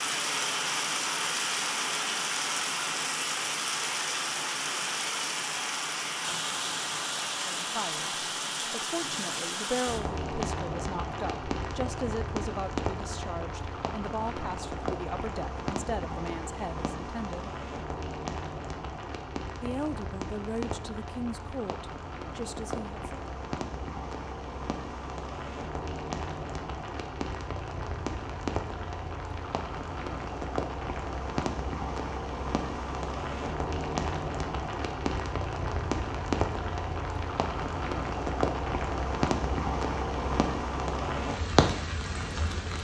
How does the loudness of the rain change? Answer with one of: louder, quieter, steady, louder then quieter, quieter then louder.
quieter then louder.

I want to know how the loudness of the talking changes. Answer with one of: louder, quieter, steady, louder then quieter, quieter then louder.
steady.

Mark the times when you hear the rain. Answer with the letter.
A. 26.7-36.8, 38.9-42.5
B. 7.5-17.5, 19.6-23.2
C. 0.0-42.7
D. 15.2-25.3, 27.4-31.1
C.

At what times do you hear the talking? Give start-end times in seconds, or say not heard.
7.5-17.5, 19.6-23.2.